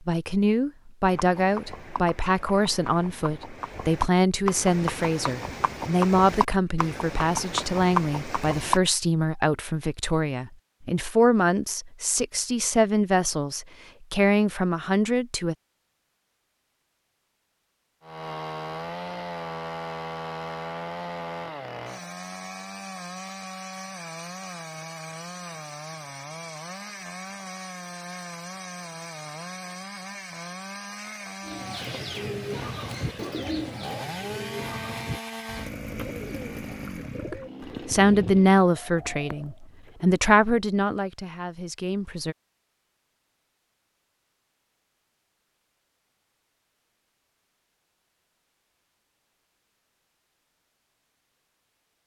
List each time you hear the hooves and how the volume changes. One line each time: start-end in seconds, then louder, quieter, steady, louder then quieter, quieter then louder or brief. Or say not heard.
1.1-8.8 louder.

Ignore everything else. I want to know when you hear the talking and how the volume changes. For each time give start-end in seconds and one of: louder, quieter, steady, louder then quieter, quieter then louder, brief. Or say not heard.
0.1-15.6 steady
37.3-42.4 quieter.